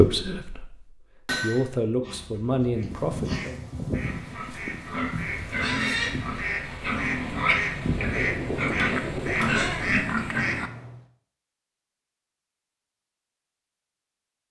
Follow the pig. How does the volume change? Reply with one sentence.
The loudness of the pig goes up.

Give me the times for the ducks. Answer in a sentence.
The ducks can be heard from 2.7 to 11.1 s.